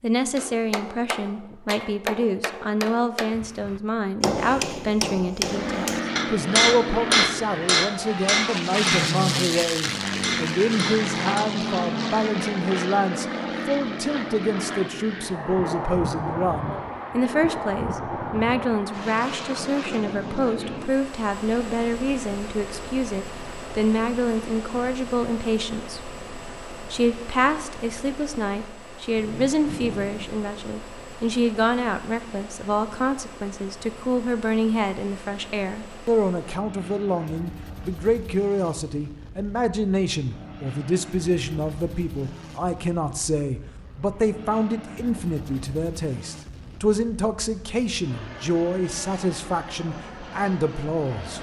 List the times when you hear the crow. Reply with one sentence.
The crow can't be heard in this clip.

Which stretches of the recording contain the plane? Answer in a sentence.
The plane can be heard from 5.4 to 51.3 s.